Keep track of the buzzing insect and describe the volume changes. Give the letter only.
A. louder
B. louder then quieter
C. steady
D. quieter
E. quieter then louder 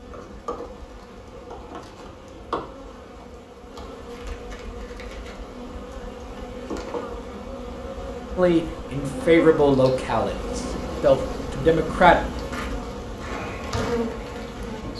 A.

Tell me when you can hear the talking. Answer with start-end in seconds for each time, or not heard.
8.3-12.2.